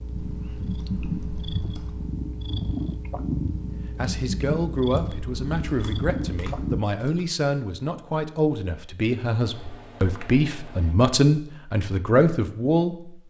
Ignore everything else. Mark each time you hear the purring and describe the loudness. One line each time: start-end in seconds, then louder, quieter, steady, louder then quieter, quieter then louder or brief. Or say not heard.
0.0-6.8 steady.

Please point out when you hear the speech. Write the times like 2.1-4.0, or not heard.
3.8-13.2.